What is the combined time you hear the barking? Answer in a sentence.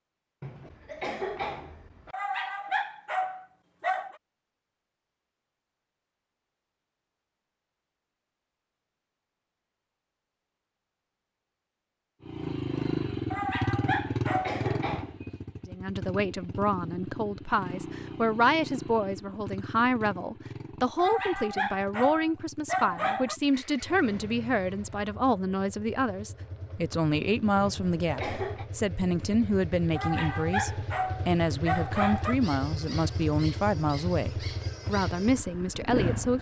The barking can be heard for 8 seconds in total.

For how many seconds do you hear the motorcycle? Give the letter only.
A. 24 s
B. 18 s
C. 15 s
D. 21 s
A.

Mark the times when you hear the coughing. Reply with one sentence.
The coughing can be heard from 0.4 to 2.1 s, from 13.8 to 15.2 s and from 27.6 to 28.6 s.